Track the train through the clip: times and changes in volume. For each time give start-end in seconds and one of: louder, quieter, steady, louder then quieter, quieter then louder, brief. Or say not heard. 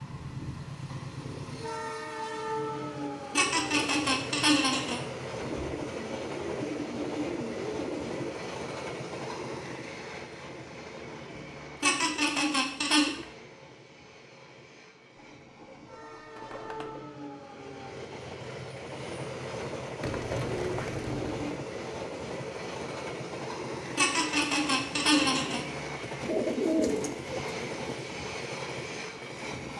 0.0-29.7 quieter then louder.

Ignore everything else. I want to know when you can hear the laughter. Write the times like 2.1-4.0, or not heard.
3.4-5.0, 11.8-13.1, 23.9-25.6.